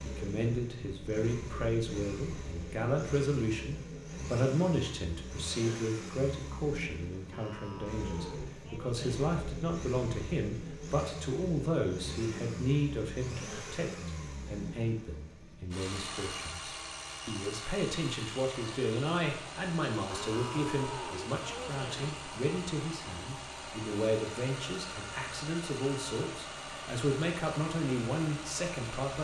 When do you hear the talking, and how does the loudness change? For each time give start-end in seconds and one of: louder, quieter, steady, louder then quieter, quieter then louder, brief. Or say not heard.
0.0-29.1 steady.